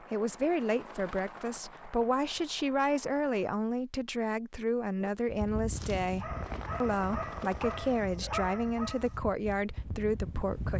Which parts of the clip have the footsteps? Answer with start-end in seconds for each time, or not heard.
not heard.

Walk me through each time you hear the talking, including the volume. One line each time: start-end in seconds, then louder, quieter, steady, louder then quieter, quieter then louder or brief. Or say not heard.
0.1-10.7 steady.